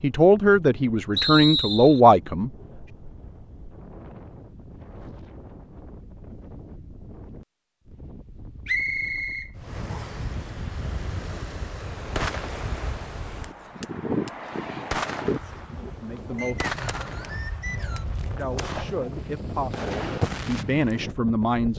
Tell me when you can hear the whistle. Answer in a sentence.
You can hear the whistle from 1.1 to 2.0 s, from 8.7 to 10.2 s and from 16.4 to 18.1 s.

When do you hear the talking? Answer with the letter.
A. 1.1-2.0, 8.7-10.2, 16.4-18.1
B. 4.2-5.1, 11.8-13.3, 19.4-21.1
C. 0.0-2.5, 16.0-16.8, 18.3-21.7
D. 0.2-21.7
C.